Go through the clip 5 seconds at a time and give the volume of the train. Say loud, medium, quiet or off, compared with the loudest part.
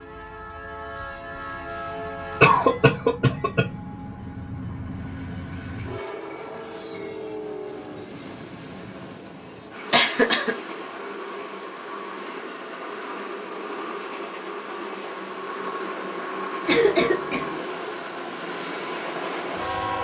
medium, medium, loud, loud.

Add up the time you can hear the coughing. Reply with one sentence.
You can hear the coughing for 3 seconds altogether.